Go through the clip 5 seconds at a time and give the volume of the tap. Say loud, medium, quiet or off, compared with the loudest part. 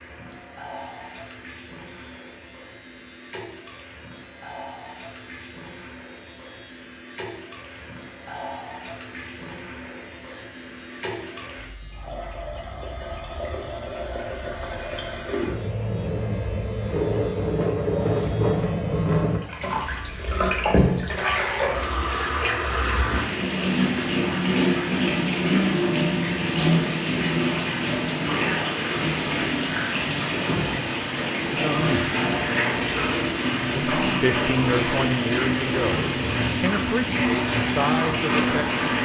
quiet, quiet, quiet, loud, loud, loud, loud, loud.